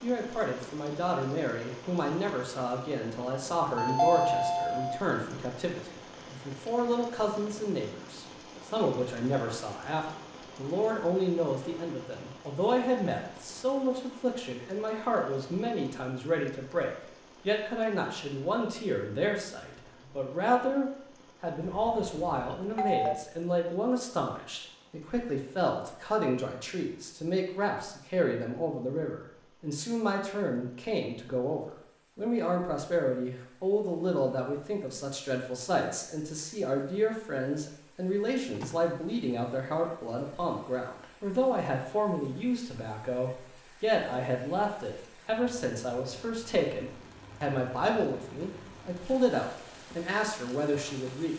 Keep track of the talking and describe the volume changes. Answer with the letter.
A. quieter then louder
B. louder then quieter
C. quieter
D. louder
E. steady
E.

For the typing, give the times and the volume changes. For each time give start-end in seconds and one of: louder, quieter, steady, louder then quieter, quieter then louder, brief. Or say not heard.
not heard.